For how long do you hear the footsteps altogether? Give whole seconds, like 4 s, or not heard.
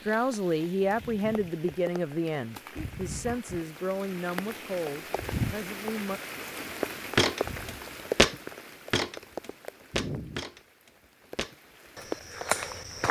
6 s.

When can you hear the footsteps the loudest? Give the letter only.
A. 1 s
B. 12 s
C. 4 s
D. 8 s
D.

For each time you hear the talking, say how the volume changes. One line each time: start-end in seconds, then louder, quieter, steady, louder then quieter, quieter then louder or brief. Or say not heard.
0.1-6.2 quieter.